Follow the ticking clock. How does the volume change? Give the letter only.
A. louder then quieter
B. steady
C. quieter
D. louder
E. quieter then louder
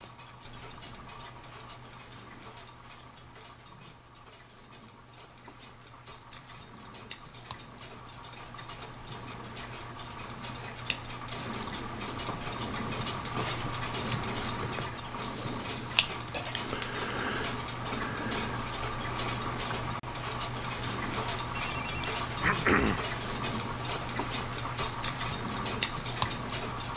D.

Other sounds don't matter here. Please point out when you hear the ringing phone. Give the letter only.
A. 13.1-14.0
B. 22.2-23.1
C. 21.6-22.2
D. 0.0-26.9
C.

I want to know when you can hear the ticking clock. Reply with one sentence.
The ticking clock can be heard from 0.0 to 26.9 s.